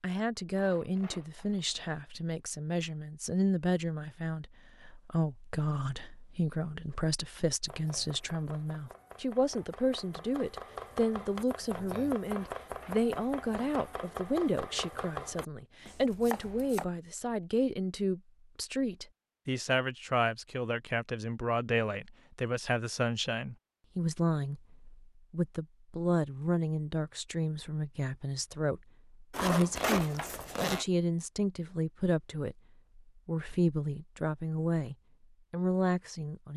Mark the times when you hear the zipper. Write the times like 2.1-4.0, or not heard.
0.5-1.9, 12.3-13.8, 29.3-30.9.